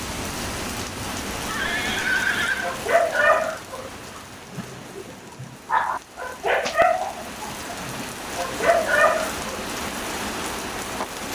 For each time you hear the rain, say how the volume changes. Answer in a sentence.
You can hear the rain from 0.0 to 11.3 s, getting quieter then louder.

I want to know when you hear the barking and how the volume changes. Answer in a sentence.
The barking can be heard from 2.4 to 9.5 s, getting quieter then louder.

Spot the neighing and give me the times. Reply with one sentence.
You can hear the neighing from 1.4 to 2.8 s.